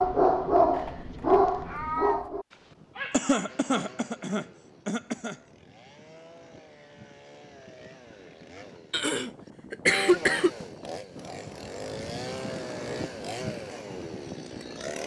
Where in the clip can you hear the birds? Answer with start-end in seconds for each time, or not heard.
not heard.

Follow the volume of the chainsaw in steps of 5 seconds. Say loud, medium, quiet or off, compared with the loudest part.
quiet, medium, loud.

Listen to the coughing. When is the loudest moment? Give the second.
10 s.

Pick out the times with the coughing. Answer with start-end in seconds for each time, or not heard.
3.1-5.3, 8.9-10.5.